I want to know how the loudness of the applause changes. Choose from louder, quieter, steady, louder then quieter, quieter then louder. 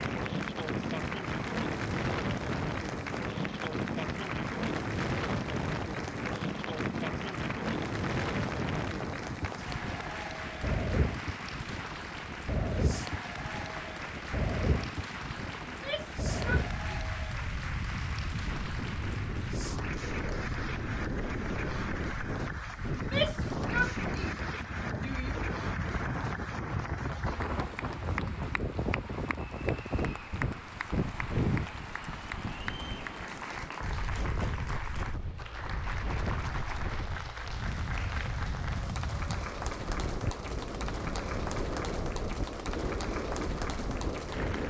steady.